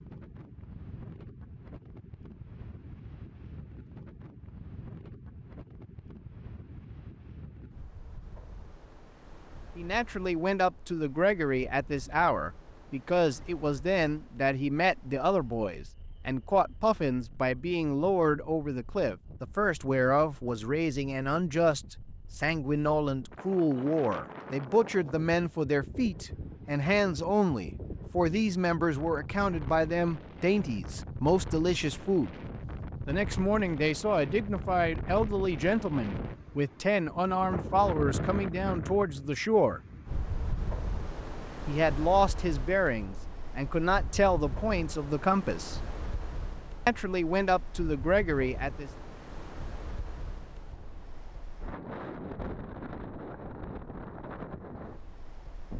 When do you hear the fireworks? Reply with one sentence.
The fireworks can't be heard in this clip.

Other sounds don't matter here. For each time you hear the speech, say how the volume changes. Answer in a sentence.
You can hear the speech from 9.8 to 32.4 s, at a steady volume; from 33.0 to 39.8 s, at a steady volume; from 41.6 to 45.8 s, at a steady volume; and briefly from 46.9 to 48.9 s.